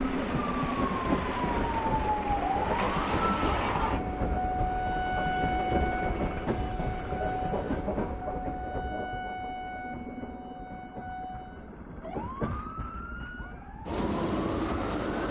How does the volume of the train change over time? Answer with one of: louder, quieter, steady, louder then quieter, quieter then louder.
quieter then louder.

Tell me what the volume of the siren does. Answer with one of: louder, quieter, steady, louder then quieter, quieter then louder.
quieter.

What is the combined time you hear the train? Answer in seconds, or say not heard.
15 s.